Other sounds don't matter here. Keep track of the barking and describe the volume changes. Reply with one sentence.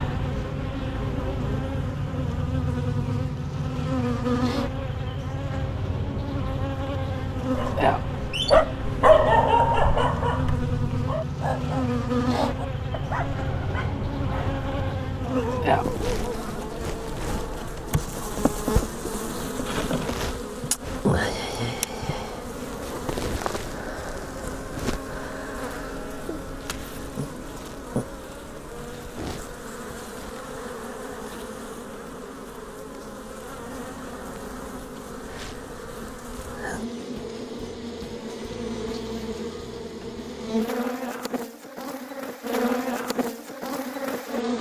The loudness of the barking goes down.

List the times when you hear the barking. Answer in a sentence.
The barking can be heard from 7.5 to 16.4 s.